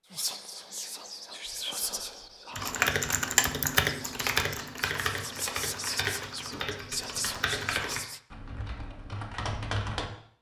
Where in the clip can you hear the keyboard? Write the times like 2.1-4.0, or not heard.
2.5-10.1.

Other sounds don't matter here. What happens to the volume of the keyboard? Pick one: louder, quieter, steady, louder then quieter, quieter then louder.
quieter.